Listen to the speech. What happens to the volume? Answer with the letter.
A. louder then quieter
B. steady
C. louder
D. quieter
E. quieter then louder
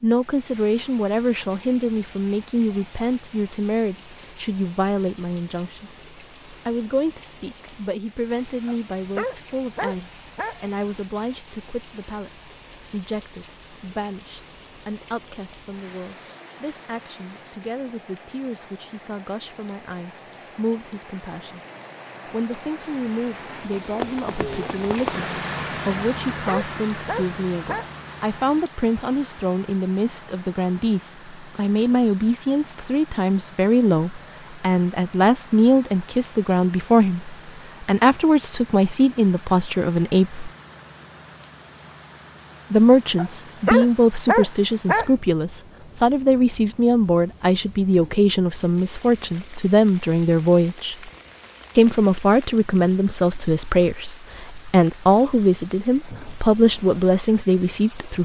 E.